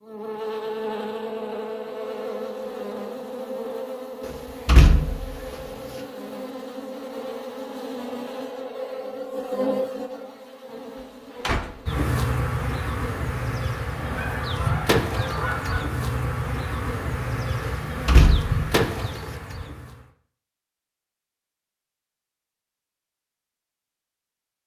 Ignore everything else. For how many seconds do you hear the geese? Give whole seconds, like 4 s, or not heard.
2 s.